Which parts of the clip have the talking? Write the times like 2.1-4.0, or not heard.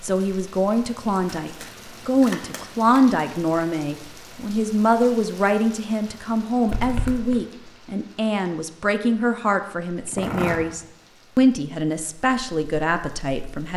0.0-13.7.